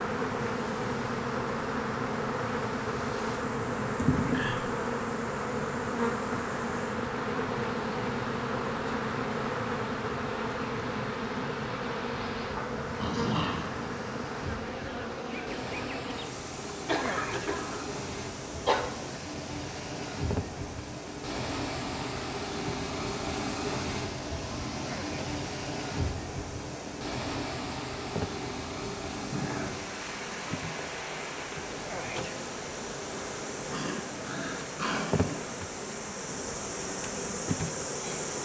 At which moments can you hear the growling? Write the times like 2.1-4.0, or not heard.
12.3-13.7, 33.7-35.4.